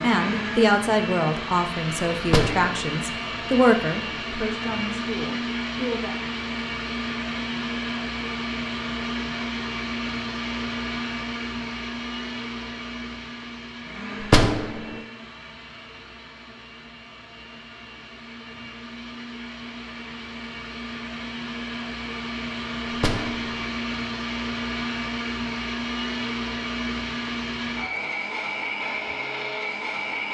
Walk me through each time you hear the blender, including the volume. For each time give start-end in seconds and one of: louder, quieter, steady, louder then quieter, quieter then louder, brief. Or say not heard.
0.0-30.3 quieter then louder.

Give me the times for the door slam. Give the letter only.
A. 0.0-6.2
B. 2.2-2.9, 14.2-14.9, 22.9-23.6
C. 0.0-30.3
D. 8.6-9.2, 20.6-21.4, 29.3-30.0
B.